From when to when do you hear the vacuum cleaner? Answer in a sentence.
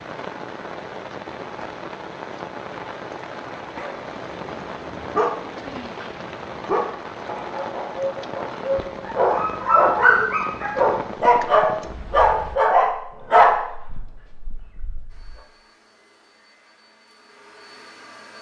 The vacuum cleaner can be heard from 15.1 to 18.3 s.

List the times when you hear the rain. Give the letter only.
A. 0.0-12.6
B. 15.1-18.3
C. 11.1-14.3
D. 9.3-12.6
A.